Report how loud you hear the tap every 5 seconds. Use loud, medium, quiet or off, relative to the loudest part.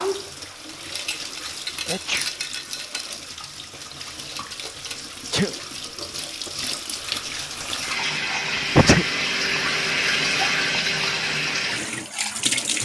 medium, loud, loud.